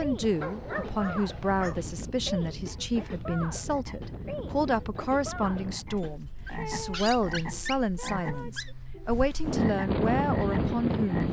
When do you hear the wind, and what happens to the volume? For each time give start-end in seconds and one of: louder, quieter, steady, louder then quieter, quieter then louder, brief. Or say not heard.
0.0-11.2 quieter then louder.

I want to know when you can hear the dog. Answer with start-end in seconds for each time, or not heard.
0.4-1.8, 6.0-8.8.